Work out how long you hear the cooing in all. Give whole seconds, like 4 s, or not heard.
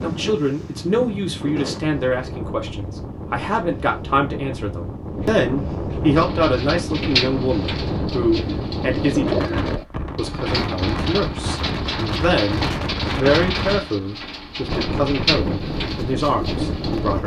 11 s.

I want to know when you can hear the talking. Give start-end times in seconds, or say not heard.
0.0-17.2.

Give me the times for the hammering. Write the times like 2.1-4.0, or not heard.
not heard.